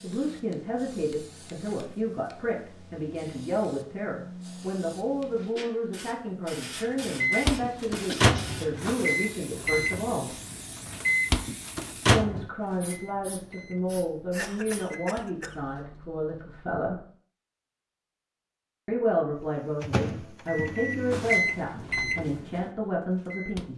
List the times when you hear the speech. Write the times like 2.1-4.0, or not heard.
0.0-10.3, 12.1-17.0, 18.9-23.7.